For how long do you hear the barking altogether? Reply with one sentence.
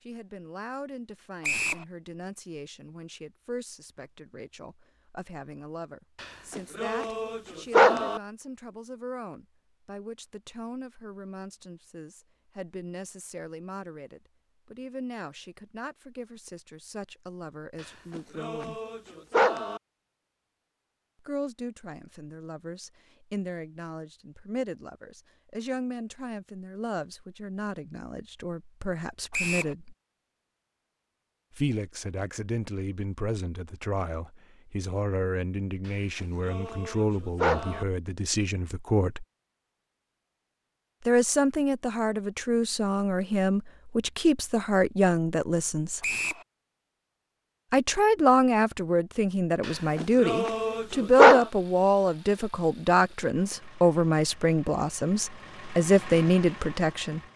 The barking can be heard for 8 seconds in total.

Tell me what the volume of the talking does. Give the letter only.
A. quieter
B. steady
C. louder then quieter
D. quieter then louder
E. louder
E.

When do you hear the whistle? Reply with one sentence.
The whistle can be heard from 1.4 to 1.9 s, from 29.3 to 29.8 s and from 46.0 to 46.5 s.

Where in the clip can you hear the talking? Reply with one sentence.
The talking can be heard from 0.1 to 18.8 s, from 21.2 to 29.9 s, from 31.6 to 39.2 s, from 41.0 to 46.0 s and from 47.7 to 57.2 s.